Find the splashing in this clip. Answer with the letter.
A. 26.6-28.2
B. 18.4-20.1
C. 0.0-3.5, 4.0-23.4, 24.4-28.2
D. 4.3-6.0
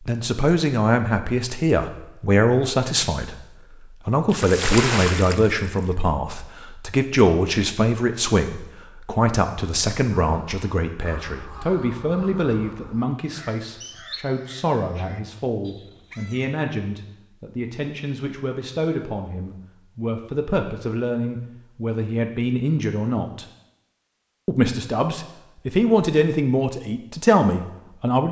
D.